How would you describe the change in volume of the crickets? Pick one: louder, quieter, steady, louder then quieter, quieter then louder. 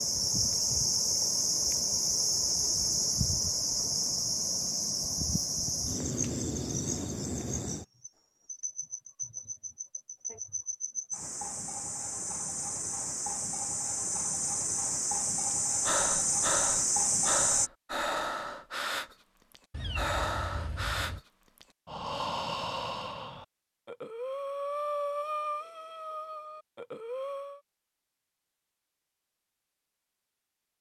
quieter then louder.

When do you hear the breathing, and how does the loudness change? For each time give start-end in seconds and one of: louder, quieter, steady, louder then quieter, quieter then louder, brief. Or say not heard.
15.8-27.6 steady.